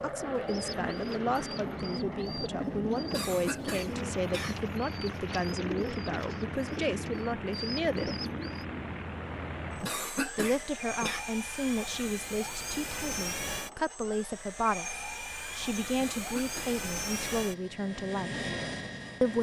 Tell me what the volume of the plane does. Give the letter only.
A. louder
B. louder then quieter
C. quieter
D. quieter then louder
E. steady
E.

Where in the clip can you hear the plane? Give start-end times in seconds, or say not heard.
0.0-19.3.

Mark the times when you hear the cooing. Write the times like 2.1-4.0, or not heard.
0.5-8.7.